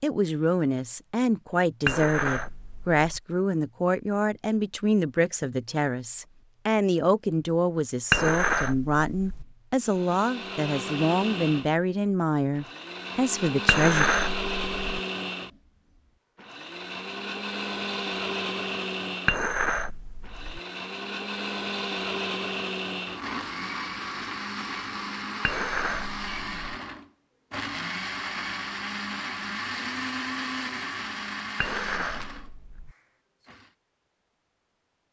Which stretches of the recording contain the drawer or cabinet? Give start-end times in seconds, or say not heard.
not heard.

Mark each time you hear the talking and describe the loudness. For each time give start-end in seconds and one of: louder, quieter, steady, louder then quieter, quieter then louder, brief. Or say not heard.
0.0-14.1 steady.